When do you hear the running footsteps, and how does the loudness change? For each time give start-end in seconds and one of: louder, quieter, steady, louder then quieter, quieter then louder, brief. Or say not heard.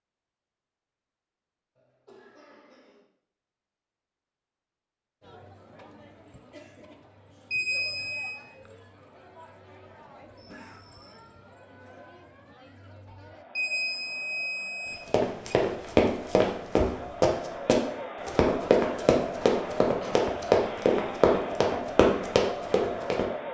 15.1-23.2 steady.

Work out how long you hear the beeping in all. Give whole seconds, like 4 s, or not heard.
3 s.